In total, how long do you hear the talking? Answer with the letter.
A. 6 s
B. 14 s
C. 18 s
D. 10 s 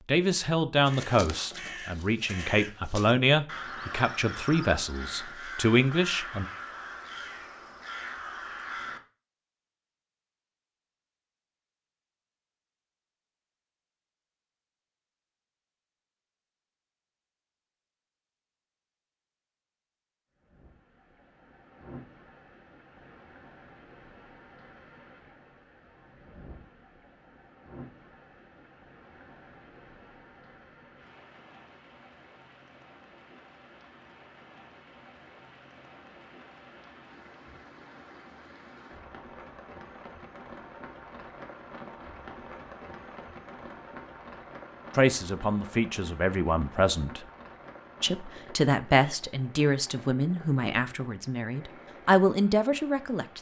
B.